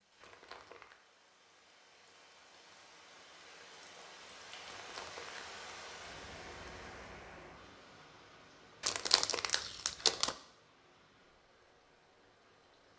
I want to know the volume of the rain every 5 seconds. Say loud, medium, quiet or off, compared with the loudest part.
medium, loud, quiet.